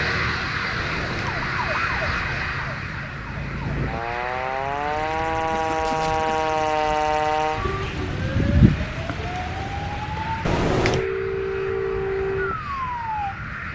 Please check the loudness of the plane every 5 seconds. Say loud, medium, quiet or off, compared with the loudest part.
loud, medium, medium.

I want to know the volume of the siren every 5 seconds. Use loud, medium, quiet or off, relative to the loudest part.
medium, loud, loud.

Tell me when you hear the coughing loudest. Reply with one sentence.
The loudest moment of the coughing is at 11 seconds.